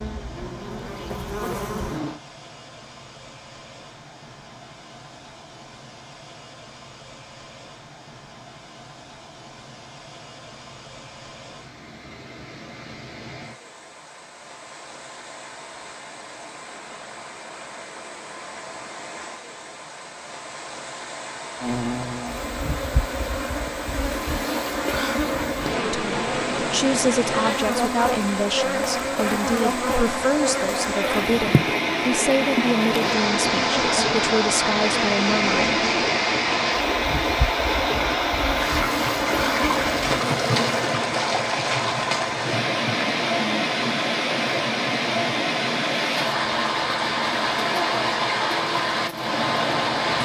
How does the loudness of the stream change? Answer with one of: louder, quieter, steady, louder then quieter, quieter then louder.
louder.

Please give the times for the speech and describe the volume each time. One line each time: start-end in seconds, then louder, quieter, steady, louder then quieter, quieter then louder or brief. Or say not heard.
25.8-35.9 steady.